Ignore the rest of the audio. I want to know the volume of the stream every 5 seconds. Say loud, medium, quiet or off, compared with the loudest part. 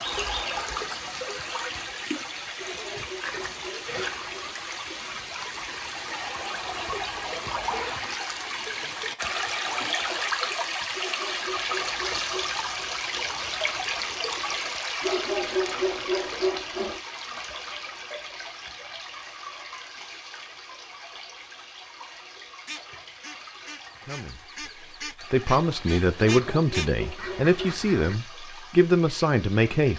loud, loud, loud, medium, quiet, quiet.